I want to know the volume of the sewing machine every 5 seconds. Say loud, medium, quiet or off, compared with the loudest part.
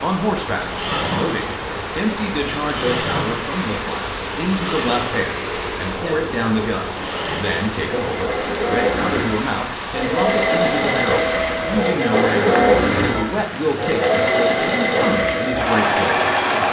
medium, medium, loud, loud.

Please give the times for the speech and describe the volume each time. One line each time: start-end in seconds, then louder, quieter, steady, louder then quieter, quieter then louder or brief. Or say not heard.
0.0-16.3 steady.